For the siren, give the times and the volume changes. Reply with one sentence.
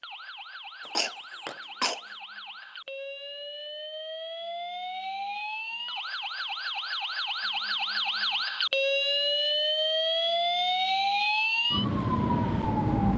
The siren can be heard from 0.0 to 13.1 s, getting louder.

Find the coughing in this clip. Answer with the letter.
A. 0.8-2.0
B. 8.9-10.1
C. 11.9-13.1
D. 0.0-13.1
A.